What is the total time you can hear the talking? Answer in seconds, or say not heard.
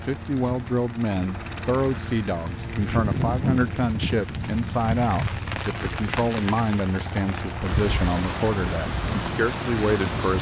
10 s.